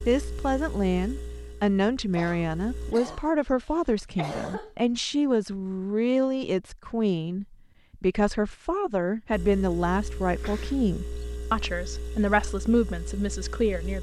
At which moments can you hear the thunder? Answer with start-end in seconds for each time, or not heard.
not heard.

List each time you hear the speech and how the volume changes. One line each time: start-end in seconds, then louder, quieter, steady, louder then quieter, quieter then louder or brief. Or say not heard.
0.1-13.9 steady.